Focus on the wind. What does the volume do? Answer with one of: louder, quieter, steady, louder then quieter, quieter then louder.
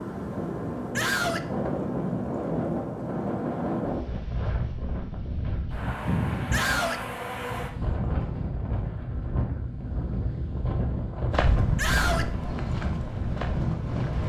steady.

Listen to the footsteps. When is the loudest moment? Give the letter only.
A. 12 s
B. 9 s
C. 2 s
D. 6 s
A.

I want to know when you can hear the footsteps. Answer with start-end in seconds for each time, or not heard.
11.3-14.2.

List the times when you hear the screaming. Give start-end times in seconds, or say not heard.
0.9-1.4, 6.5-7.0, 11.8-12.3.